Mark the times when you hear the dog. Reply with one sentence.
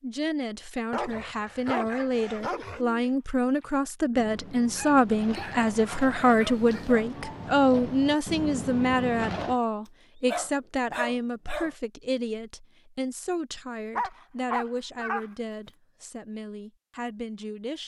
You can hear the dog from 0.9 to 2.8 s, from 4.7 to 7.0 s, from 10.2 to 11.8 s and from 13.9 to 15.7 s.